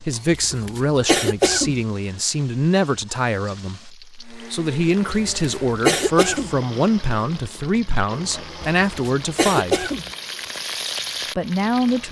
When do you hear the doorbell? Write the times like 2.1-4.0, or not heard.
not heard.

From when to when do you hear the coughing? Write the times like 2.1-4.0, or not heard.
0.3-1.8, 5.0-6.5, 8.6-10.1.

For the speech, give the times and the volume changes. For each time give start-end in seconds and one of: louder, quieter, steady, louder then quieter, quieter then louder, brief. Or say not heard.
0.0-9.8 steady
11.3-12.0 brief.